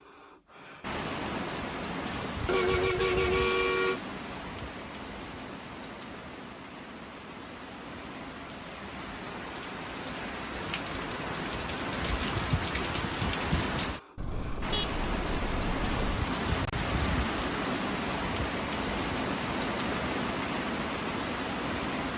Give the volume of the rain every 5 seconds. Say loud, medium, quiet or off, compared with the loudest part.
medium, medium, loud, loud, loud.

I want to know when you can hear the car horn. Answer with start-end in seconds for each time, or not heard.
2.5-4.0, 14.2-16.2.